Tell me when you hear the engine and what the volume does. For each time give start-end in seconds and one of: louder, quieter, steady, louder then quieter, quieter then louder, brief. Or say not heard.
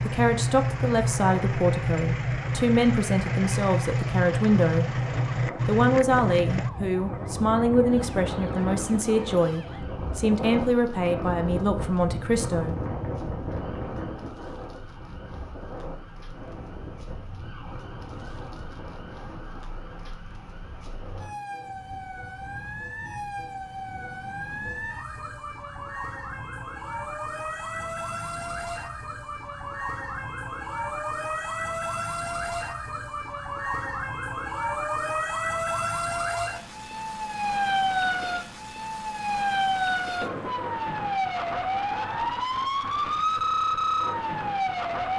0.0-6.7 steady.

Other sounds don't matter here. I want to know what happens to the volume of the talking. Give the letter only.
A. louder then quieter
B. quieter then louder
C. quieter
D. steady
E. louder
D.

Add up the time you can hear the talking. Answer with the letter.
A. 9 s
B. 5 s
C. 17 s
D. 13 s
D.